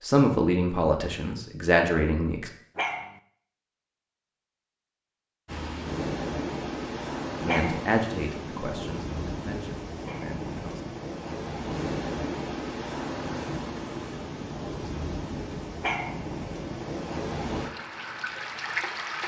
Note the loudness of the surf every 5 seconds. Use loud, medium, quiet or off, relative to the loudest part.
off, loud, loud, loud.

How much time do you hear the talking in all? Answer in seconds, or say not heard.
6 s.